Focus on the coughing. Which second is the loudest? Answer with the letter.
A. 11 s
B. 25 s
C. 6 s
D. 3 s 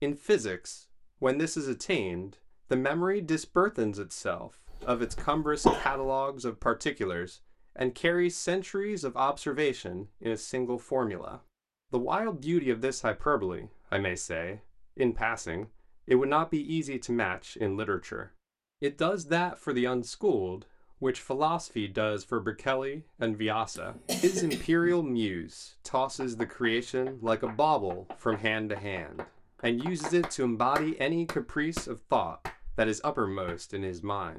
C.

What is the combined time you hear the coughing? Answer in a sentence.
The coughing can be heard for 3 seconds in total.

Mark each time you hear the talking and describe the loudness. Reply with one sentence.
You can hear the talking from 0.0 to 34.3 s, at a steady volume.